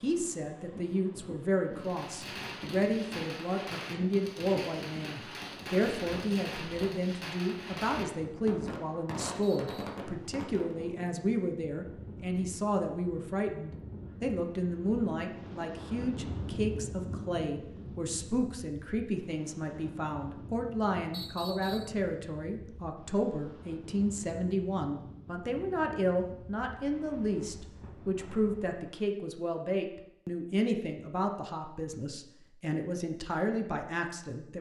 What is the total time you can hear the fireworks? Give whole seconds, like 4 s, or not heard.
9 s.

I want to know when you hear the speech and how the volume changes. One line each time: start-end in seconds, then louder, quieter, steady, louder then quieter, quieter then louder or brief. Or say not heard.
0.0-34.5 steady.